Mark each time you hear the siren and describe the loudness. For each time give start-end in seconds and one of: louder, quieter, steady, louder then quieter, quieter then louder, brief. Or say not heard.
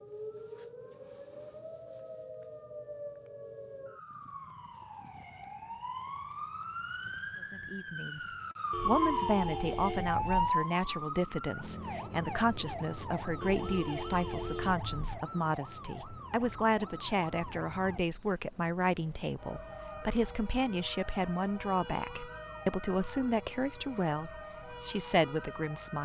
0.0-26.0 louder then quieter.